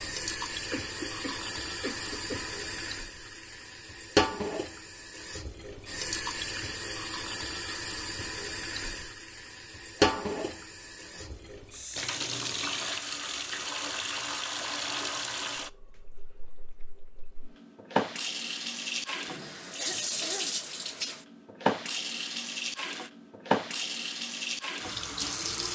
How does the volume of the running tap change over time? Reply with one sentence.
The volume of the running tap stays about the same.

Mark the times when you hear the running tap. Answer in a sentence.
You can hear the running tap from 0.0 to 25.7 s.